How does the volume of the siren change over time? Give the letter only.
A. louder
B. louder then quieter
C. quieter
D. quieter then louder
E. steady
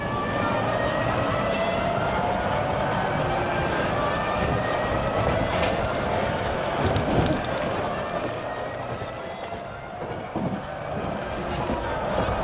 C.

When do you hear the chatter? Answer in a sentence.
The chatter can be heard from 0.1 to 12.4 s.